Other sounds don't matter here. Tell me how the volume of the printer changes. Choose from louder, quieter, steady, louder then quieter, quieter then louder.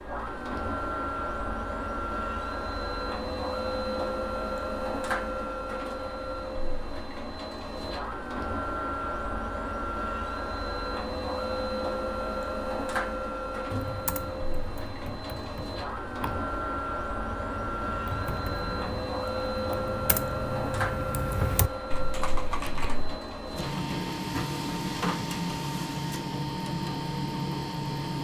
steady.